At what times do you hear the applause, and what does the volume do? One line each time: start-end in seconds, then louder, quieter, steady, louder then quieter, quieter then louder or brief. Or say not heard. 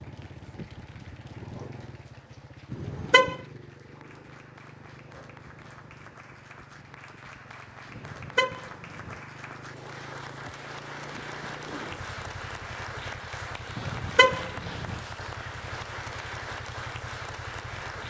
0.0-18.0 louder.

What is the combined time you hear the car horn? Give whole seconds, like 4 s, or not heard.
3 s.